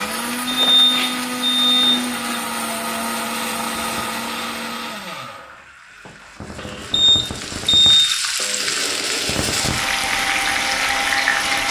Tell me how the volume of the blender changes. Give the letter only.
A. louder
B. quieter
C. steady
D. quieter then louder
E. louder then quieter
D.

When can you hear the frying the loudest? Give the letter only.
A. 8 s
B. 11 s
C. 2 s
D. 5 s
B.